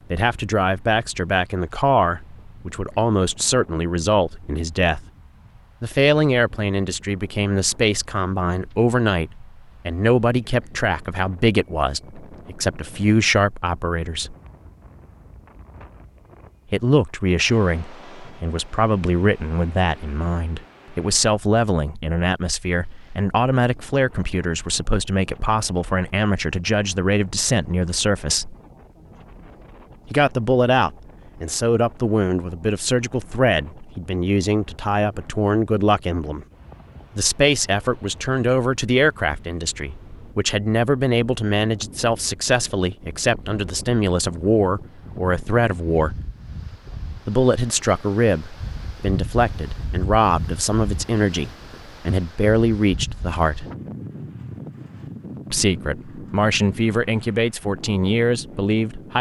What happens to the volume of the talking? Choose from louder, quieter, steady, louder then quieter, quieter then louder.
steady.